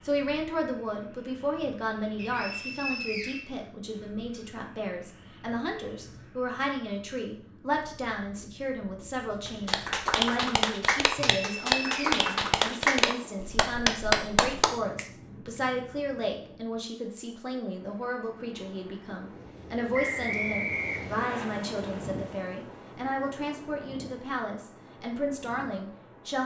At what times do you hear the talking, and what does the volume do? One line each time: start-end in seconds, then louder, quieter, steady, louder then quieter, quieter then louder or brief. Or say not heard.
0.0-26.4 steady.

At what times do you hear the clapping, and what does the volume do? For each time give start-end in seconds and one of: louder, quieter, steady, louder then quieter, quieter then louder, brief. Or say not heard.
9.4-15.1 steady.